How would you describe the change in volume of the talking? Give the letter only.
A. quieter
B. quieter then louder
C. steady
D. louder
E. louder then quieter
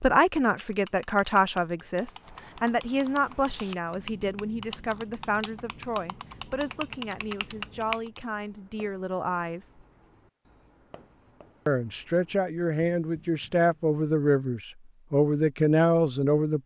B.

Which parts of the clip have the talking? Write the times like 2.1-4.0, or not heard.
0.0-9.7, 11.7-16.6.